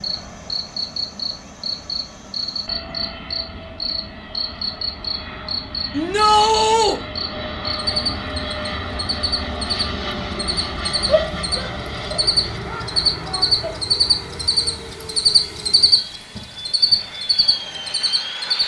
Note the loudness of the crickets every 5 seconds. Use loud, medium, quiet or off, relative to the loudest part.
medium, medium, loud, loud.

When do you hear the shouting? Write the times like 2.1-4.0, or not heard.
5.9-7.0, 11.1-13.8.